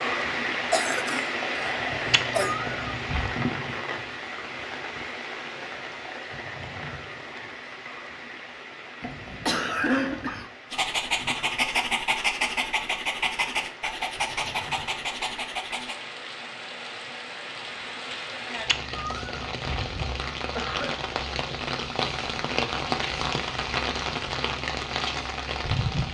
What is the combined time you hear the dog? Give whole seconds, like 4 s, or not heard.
5 s.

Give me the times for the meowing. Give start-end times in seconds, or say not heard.
2.1-3.4, 18.6-20.2.